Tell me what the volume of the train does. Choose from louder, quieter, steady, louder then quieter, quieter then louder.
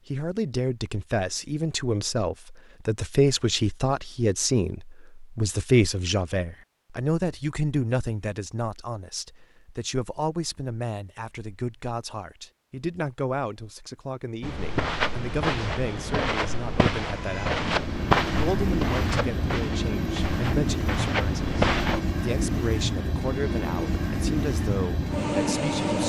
steady.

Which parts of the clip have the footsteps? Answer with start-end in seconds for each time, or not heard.
14.4-22.0.